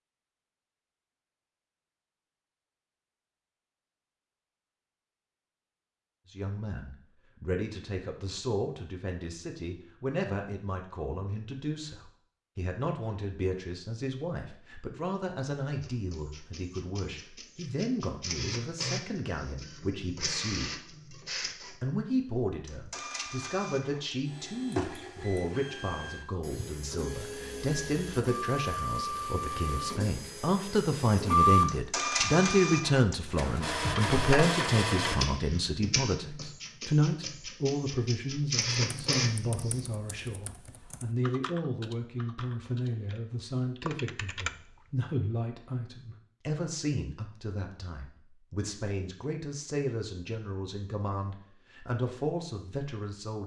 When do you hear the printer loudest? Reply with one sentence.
The loudest moment of the printer is at 32 seconds.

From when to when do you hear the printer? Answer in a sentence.
You can hear the printer from 15.8 to 39.9 s.